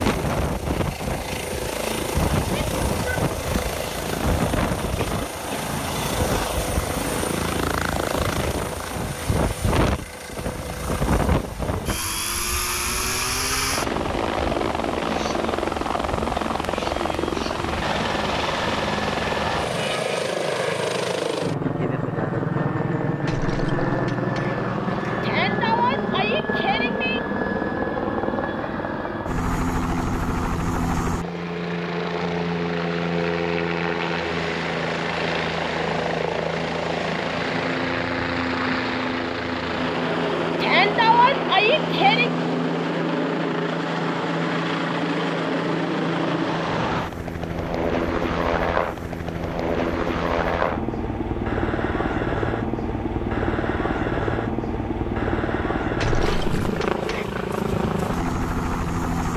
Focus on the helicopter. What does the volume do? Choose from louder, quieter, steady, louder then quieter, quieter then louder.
steady.